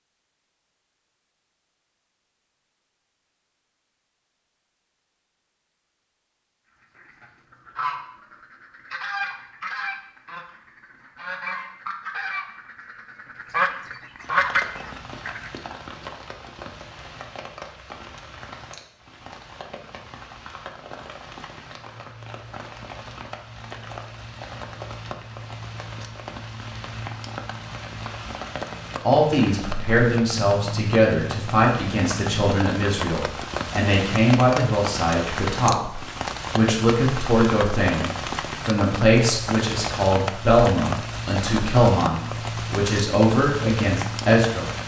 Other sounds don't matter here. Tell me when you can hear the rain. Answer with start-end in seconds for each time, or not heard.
14.2-44.8.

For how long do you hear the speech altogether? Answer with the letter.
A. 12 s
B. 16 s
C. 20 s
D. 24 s
B.